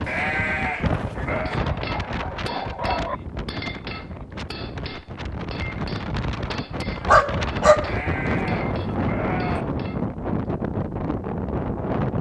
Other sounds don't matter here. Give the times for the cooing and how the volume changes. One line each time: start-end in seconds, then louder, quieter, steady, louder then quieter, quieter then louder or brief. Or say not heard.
not heard.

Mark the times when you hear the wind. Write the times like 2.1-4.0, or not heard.
0.0-12.1.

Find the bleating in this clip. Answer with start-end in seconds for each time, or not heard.
0.0-1.6, 7.8-9.7.